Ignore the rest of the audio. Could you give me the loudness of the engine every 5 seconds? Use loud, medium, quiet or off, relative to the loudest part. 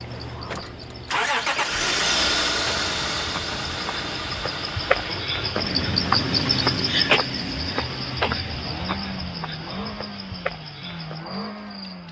loud, medium, medium.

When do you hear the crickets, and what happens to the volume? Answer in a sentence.
You can hear the crickets from 0.0 to 12.0 s, getting louder then quieter.